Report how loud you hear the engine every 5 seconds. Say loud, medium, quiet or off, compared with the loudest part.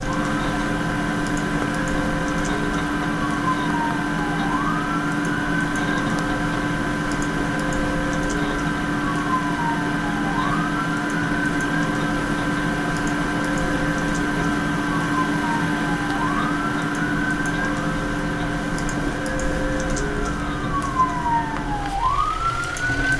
loud, loud, loud, loud, medium.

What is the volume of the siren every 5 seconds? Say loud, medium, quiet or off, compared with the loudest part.
medium, medium, medium, medium, loud.